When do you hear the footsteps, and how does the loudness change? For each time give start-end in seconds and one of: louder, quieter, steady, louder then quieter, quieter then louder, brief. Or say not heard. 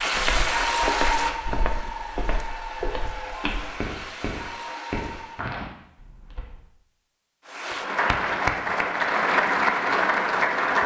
0.0-6.6 steady.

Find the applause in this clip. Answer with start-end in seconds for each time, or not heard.
0.0-5.5, 7.5-10.8.